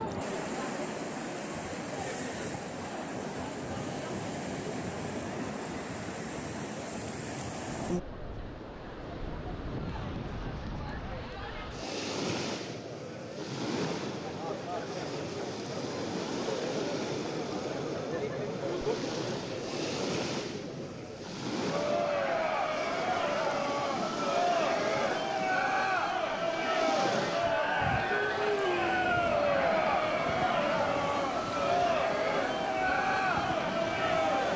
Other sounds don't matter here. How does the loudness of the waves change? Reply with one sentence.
The loudness of the waves stays about the same.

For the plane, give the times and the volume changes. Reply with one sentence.
You can't hear the plane here.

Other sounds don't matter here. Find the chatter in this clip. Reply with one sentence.
The chatter can be heard from 0.0 to 34.5 s.